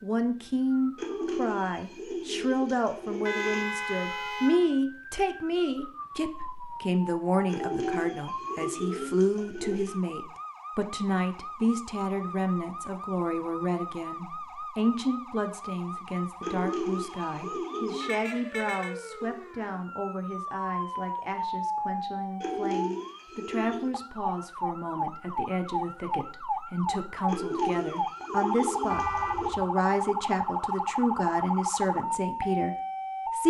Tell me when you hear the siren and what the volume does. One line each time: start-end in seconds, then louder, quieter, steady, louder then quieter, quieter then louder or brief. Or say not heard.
0.0-33.4 louder.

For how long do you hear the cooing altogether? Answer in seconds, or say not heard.
11 s.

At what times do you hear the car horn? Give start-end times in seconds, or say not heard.
3.2-4.7, 18.0-18.9, 28.9-29.7.